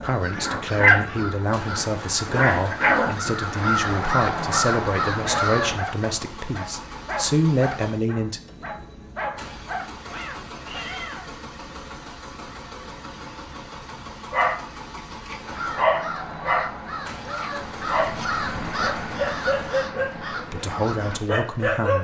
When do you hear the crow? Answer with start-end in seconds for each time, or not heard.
0.0-5.8, 15.4-21.2.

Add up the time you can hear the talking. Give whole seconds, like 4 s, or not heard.
10 s.